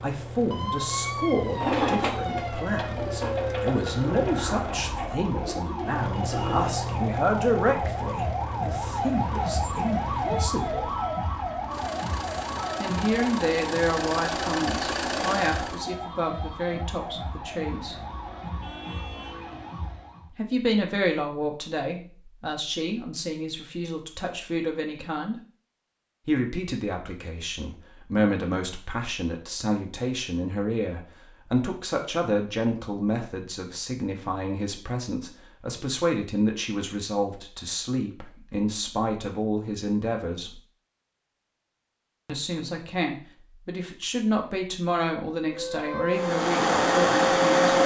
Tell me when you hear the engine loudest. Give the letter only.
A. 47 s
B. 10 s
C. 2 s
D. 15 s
A.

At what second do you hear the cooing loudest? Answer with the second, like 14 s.
2 s.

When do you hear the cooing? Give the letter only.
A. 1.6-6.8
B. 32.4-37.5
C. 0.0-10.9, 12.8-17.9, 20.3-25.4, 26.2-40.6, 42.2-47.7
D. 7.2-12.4
A.